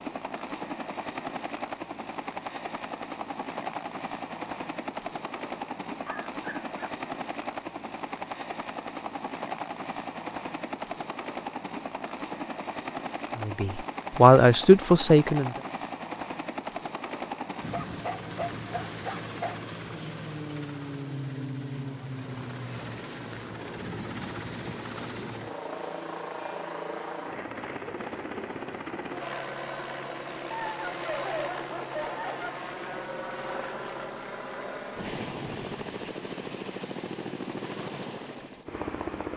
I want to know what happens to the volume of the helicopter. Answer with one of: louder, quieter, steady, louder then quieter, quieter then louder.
steady.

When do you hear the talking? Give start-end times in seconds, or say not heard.
13.3-15.5.